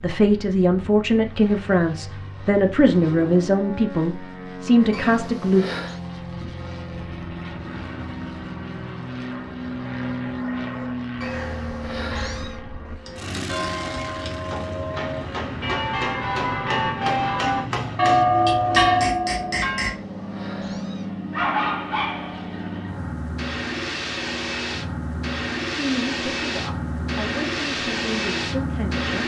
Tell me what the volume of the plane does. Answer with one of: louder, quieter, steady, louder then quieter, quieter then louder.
louder.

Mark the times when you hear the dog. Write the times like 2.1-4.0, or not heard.
21.3-22.8.